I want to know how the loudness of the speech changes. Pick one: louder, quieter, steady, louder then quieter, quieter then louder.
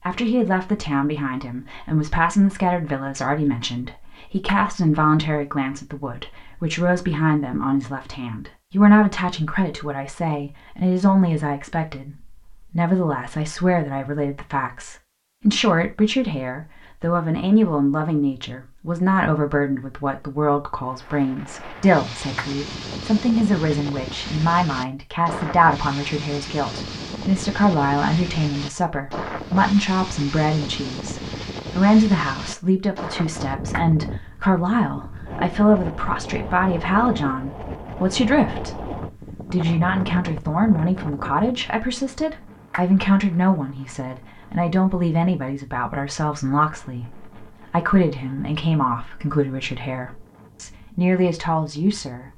steady.